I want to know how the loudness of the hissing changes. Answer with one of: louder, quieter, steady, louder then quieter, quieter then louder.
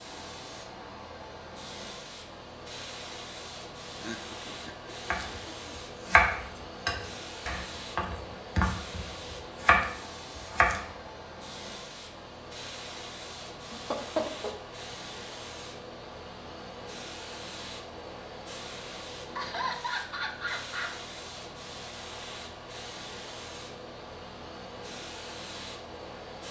steady.